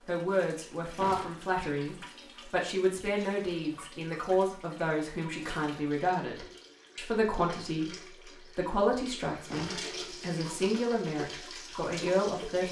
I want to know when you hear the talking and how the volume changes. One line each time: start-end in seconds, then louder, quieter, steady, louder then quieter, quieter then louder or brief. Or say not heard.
0.1-12.6 steady.